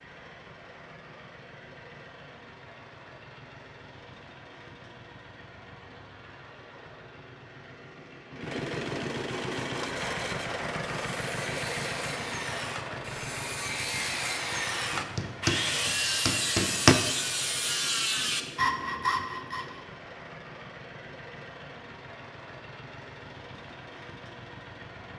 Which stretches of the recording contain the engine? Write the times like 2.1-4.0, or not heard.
0.0-25.1.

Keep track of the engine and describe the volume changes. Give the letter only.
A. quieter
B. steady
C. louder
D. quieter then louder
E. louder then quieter
E.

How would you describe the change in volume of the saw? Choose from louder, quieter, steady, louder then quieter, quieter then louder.
louder.